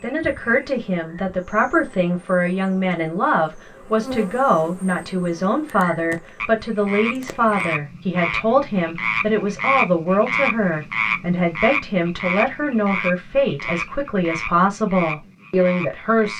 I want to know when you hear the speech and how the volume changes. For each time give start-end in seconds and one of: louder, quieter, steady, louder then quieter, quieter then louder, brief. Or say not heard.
0.0-16.3 steady.